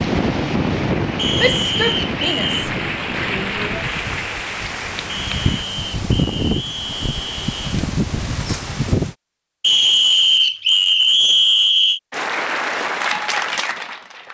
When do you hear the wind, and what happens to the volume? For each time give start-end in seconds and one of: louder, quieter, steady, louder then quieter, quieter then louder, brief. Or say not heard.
0.0-9.2 quieter then louder.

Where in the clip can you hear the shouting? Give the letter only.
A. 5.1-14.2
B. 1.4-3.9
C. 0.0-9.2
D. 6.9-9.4
B.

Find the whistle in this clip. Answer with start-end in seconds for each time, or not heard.
1.1-2.6, 5.0-7.7, 9.6-12.0.